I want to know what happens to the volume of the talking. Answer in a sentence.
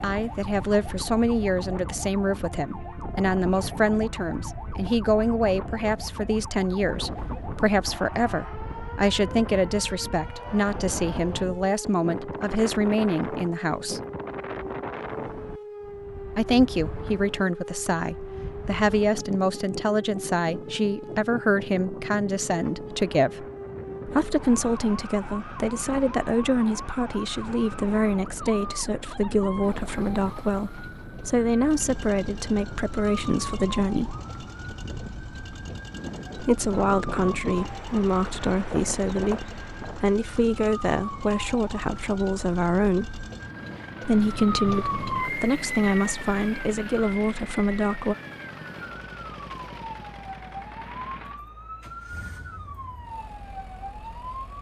The volume of the talking stays about the same.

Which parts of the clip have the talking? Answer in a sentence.
The talking can be heard from 0.0 to 14.0 s, from 16.4 to 23.4 s, from 24.1 to 34.1 s, from 36.4 to 43.2 s and from 44.0 to 48.1 s.